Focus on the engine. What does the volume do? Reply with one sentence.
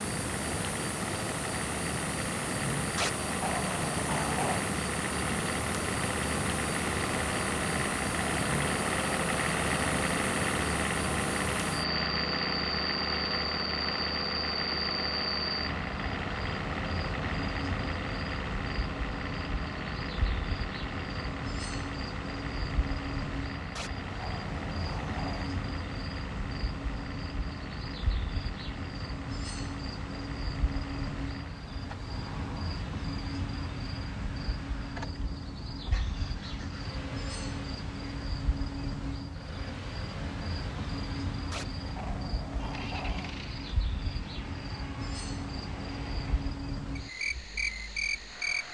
The loudness of the engine goes down.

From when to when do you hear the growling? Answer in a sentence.
The growling can be heard from 3.0 to 4.7 s, from 23.8 to 25.5 s and from 41.5 to 43.4 s.